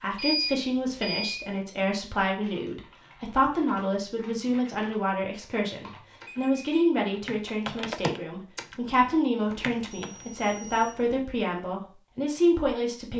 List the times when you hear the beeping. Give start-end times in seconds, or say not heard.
0.1-1.5, 6.1-6.8, 9.4-11.2.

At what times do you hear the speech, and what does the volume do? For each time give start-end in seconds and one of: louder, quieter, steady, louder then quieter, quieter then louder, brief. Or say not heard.
0.0-13.1 steady.